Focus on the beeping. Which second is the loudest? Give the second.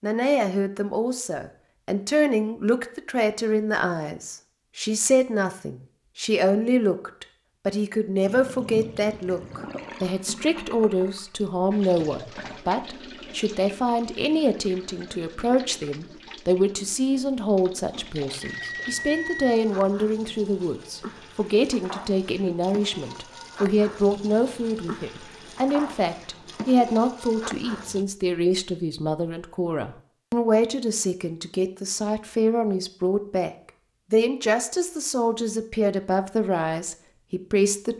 19 s.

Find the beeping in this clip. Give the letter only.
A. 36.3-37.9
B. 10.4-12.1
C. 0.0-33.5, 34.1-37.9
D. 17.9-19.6
D.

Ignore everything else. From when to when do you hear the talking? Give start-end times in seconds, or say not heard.
0.0-33.5, 34.1-37.9.